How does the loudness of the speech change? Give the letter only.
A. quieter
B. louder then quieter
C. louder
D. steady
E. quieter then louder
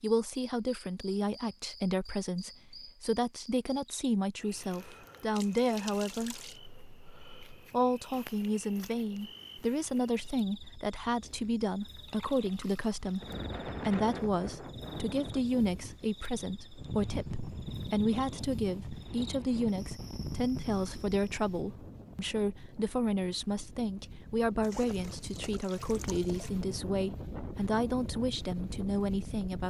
D.